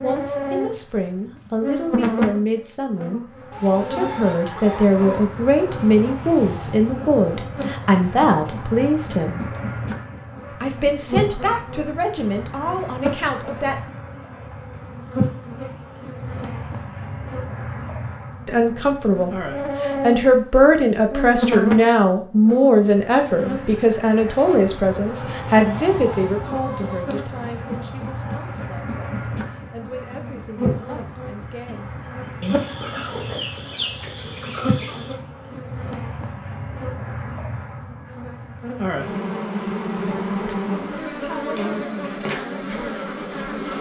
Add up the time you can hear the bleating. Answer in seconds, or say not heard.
not heard.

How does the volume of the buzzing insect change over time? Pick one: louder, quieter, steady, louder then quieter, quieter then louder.
steady.